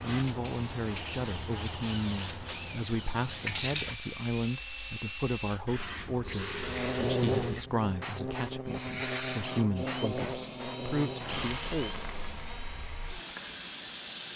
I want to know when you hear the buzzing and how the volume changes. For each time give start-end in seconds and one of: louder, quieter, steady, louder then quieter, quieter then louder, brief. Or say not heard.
6.6-14.3 quieter.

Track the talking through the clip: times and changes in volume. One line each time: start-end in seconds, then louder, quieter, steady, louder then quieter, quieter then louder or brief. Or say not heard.
0.0-11.9 steady.